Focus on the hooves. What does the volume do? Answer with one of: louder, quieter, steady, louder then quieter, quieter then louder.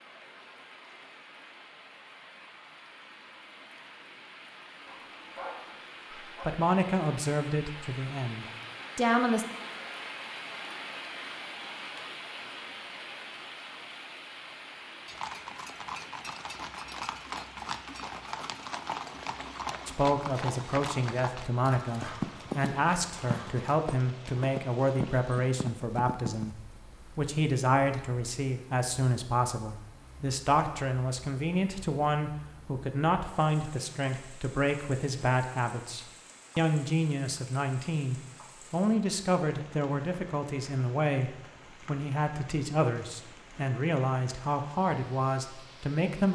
steady.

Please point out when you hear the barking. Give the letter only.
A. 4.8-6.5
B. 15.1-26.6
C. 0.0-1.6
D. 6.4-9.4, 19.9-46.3
A.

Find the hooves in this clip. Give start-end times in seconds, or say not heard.
15.1-26.6.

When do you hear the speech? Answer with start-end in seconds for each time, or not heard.
6.4-9.4, 19.9-46.3.